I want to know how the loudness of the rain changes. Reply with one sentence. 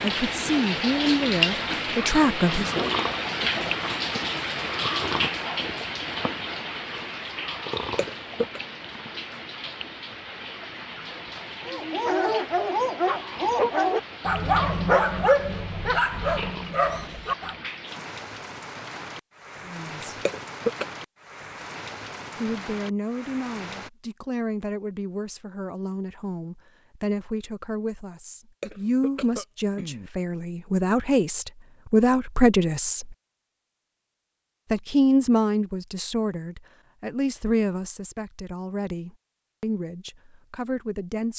The volume of the rain goes down.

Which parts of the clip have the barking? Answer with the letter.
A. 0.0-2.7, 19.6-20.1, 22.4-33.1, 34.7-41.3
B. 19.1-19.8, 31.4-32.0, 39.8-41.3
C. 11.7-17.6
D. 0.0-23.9
C.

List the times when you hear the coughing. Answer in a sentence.
The coughing can be heard from 8.0 to 8.6 s, from 20.2 to 20.9 s and from 28.6 to 30.1 s.